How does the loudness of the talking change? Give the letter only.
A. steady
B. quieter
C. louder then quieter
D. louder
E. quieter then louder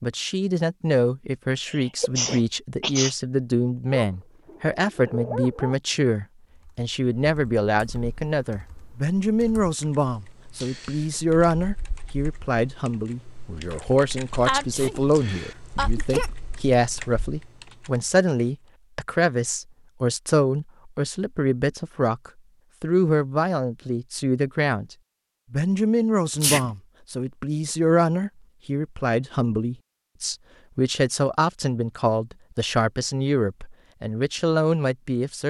A.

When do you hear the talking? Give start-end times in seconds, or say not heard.
0.0-35.4.